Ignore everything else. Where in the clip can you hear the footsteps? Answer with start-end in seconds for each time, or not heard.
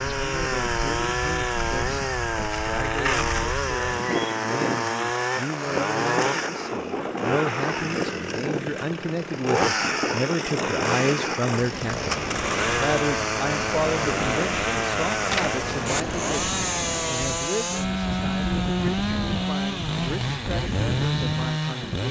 not heard.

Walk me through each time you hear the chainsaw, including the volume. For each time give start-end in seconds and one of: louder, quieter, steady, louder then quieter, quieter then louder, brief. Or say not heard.
0.0-22.0 steady.